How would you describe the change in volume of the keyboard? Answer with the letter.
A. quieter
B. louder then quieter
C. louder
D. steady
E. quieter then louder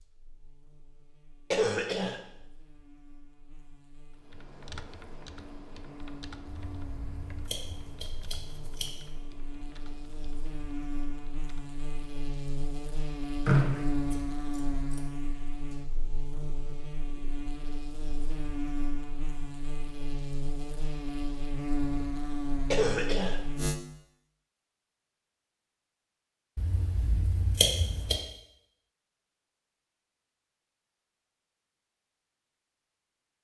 A.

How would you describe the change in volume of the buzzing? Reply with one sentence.
The loudness of the buzzing goes up.